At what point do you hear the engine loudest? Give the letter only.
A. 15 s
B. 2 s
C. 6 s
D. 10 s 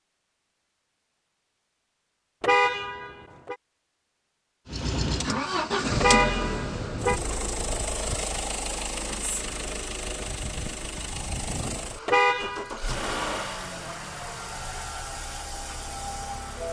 C.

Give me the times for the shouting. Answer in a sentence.
You can't hear the shouting here.